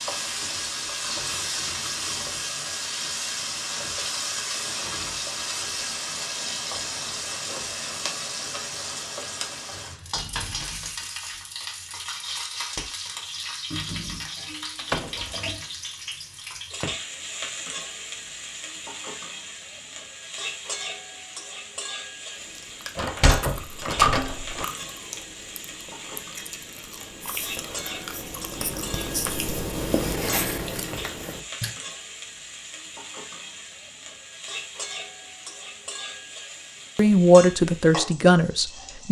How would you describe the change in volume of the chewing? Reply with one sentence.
The loudness of the chewing goes up.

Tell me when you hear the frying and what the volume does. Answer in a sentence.
You can hear the frying from 0.0 to 39.0 s, getting quieter.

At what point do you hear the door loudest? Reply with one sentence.
The volume of the door peaks at 24 seconds.